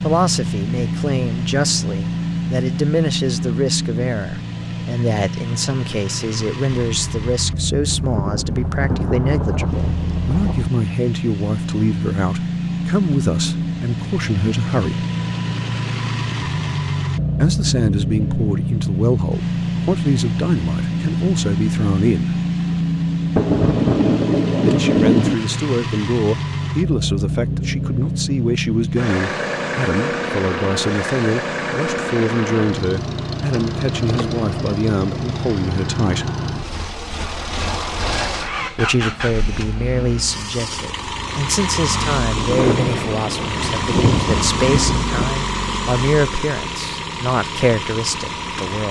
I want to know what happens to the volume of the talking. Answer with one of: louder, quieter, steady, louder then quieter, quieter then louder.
steady.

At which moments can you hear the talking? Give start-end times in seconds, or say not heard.
0.0-15.1, 17.4-22.4, 24.6-36.3, 38.2-48.8.